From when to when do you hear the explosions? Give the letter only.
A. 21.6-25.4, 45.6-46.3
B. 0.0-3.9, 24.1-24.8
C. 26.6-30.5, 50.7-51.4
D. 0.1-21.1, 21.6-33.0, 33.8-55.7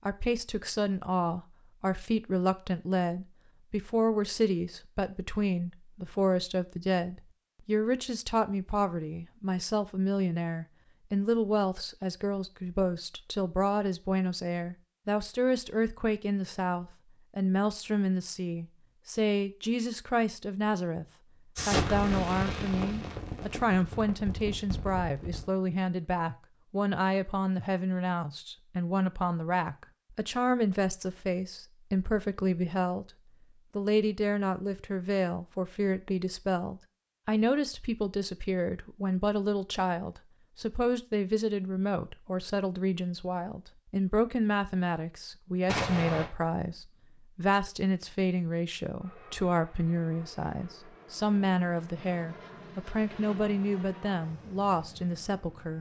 A.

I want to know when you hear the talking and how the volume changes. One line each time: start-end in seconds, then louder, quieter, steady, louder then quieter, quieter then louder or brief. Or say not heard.
0.1-21.1 steady
21.6-33.0 steady
33.8-55.7 steady.